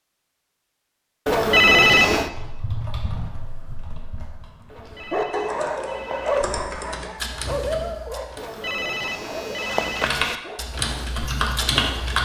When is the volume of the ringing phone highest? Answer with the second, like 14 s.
2 s.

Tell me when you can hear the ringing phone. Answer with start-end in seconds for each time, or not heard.
1.2-2.3, 4.7-6.5, 8.3-10.3.